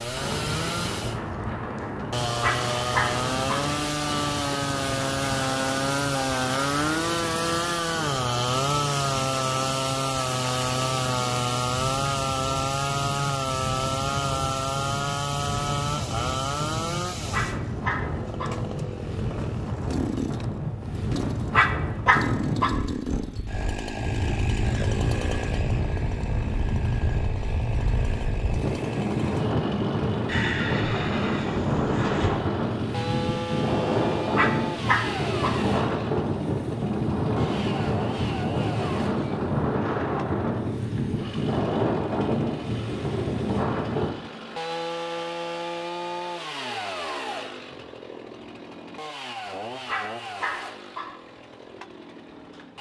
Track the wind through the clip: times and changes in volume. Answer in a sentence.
You can hear the wind from 0.0 to 44.1 s, getting louder.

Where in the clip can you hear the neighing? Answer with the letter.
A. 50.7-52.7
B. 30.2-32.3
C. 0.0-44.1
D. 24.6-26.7
B.